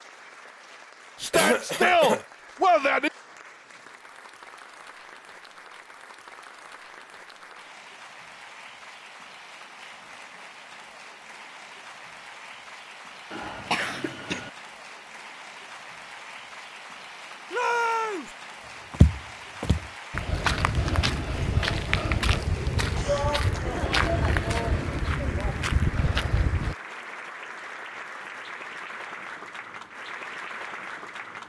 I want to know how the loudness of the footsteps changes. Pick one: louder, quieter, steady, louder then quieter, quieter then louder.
steady.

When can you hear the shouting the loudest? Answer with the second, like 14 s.
2 s.